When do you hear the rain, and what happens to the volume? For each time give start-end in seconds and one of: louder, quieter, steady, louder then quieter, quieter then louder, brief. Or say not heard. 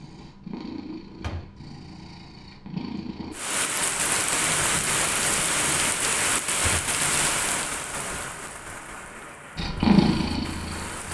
3.3-11.1 quieter.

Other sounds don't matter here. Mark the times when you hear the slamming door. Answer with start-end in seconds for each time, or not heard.
1.2-1.6, 6.6-7.0.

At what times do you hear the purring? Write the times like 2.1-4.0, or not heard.
0.0-3.4, 9.6-11.1.